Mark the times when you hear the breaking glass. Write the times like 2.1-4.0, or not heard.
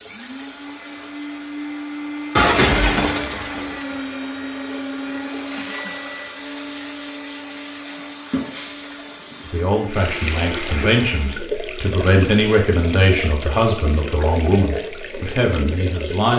2.4-4.2, 8.5-8.9.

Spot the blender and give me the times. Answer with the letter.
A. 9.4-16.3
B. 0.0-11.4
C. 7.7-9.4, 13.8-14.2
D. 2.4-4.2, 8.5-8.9
B.